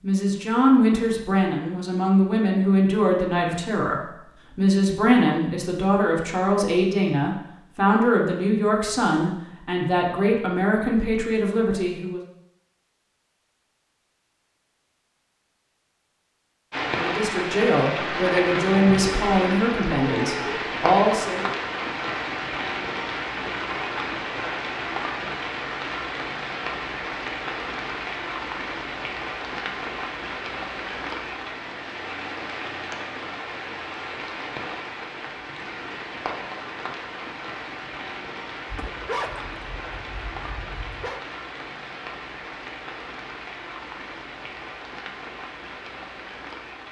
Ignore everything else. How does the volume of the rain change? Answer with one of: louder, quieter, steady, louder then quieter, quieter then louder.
quieter.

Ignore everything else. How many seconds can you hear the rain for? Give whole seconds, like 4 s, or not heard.
30 s.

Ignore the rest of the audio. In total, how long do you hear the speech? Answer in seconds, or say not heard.
17 s.